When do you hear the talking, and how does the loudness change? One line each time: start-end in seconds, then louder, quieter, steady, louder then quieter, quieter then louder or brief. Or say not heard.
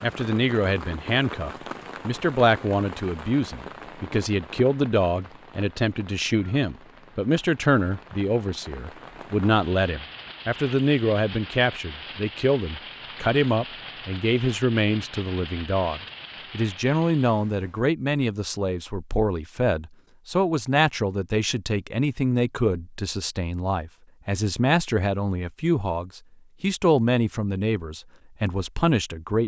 0.0-29.4 steady.